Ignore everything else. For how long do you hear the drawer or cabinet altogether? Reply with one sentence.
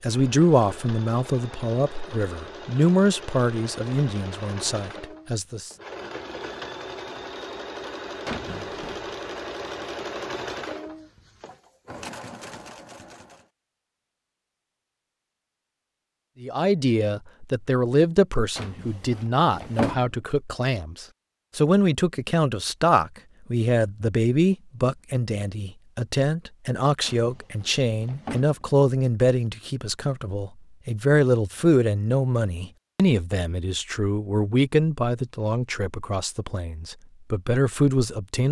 You can hear the drawer or cabinet for 4 seconds altogether.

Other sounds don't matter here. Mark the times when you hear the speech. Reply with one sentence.
The speech can be heard from 0.0 to 5.7 s and from 16.4 to 38.4 s.